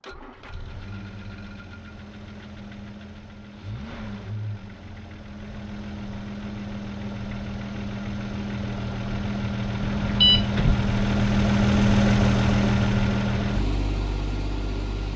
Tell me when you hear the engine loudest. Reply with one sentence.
The volume of the engine peaks at 12 seconds.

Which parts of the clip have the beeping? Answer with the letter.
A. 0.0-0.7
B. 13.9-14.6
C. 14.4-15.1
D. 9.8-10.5
D.